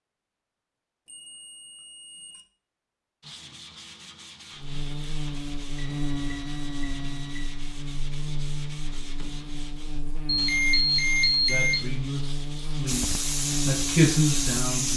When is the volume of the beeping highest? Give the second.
11 s.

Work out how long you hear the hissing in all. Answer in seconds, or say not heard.
2 s.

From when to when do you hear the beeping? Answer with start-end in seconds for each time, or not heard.
1.1-2.5, 5.8-7.7, 10.2-11.8.